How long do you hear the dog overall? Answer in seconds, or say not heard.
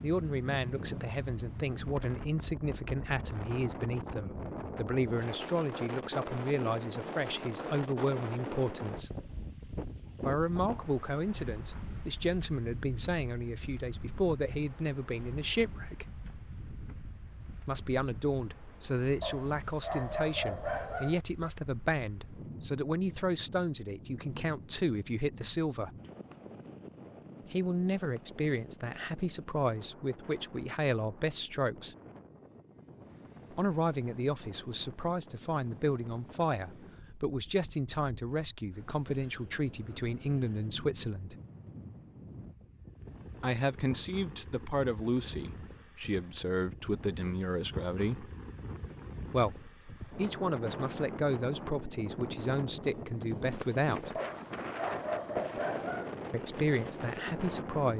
4 s.